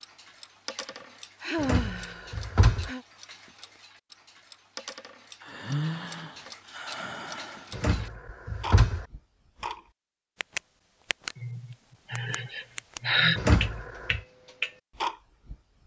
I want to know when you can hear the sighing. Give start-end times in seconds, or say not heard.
1.4-3.0, 5.4-7.7, 11.4-13.4.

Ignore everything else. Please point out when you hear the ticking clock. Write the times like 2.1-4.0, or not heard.
0.0-11.3, 12.2-15.6.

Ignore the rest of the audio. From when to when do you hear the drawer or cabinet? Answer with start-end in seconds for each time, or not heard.
1.6-2.9, 7.7-9.1, 13.3-14.2.